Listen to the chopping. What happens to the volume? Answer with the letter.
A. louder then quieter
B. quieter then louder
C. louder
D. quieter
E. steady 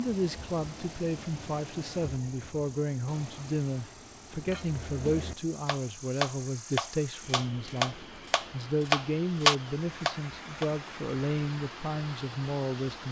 C.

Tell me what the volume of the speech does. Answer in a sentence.
The volume of the speech stays about the same.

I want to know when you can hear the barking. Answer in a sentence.
The barking can't be heard in this clip.